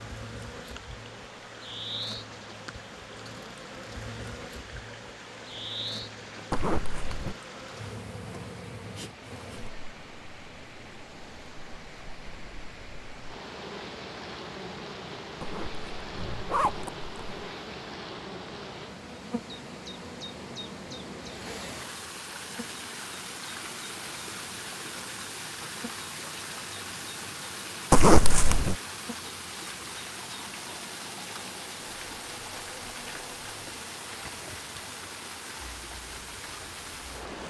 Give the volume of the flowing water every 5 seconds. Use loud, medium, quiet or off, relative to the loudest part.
medium, medium, medium, medium, loud, loud, loud, loud.